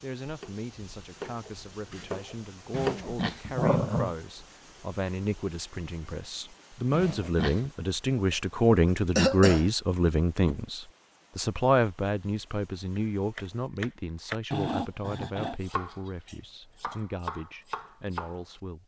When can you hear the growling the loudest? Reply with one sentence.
The loudest moment of the growling is at 4 seconds.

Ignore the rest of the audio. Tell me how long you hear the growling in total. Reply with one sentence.
The growling can be heard for 3 seconds in total.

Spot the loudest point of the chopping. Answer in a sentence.
The loudest moment of the chopping is at 3 seconds.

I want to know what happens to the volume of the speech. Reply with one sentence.
The volume of the speech goes up, then down.